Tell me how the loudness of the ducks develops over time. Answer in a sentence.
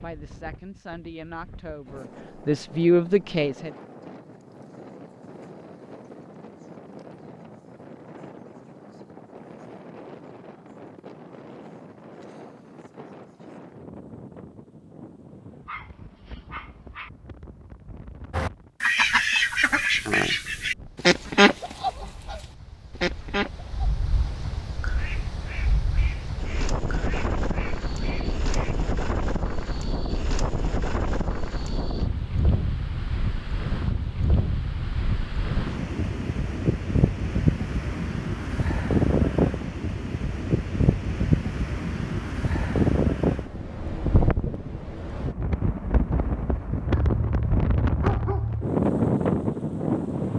The volume of the ducks goes down.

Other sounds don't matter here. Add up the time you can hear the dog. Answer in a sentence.
The dog can be heard for 3 seconds in total.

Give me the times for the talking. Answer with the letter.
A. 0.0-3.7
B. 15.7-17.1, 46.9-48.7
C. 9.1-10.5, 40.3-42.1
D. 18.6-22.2
A.